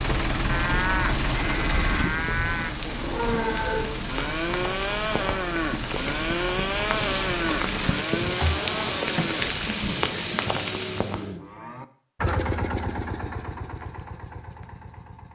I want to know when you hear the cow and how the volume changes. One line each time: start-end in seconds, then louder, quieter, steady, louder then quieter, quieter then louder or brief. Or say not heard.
0.5-12.3 quieter.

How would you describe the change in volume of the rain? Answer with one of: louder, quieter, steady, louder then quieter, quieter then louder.
louder.